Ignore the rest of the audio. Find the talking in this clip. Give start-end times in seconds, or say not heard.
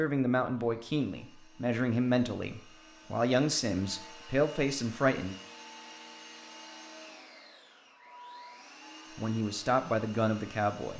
0.0-5.3, 9.2-10.9.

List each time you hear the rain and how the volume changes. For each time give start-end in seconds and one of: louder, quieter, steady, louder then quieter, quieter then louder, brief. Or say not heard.
not heard.